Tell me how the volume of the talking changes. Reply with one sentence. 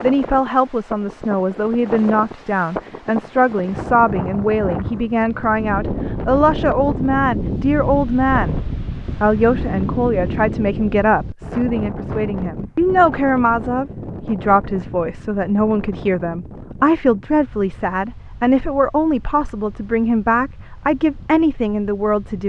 The volume of the talking stays about the same.